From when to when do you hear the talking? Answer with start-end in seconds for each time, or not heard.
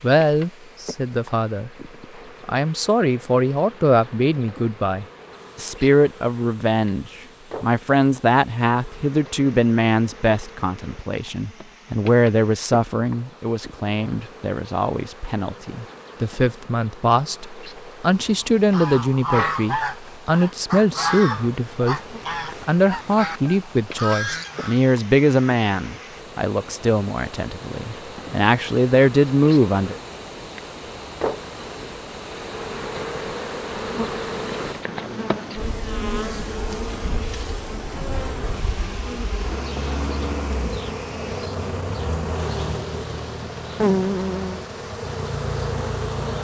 0.0-1.7, 2.5-22.0, 22.6-29.9.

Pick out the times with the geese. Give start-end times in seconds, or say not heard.
18.1-24.8.